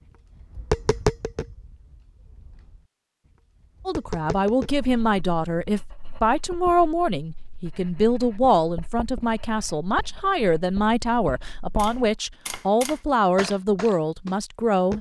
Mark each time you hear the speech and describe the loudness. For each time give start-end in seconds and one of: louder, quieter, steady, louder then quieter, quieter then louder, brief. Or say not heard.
3.9-14.9 steady.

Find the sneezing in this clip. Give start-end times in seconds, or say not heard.
not heard.